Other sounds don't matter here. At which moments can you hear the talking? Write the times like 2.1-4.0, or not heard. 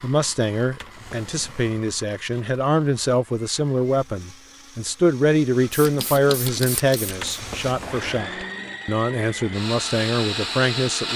0.0-11.1.